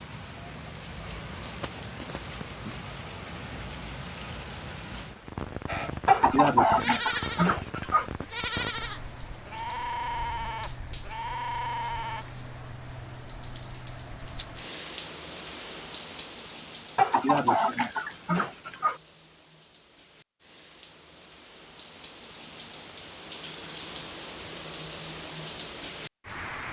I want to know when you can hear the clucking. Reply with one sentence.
You can hear the clucking from 6.0 to 8.1 s and from 16.9 to 19.0 s.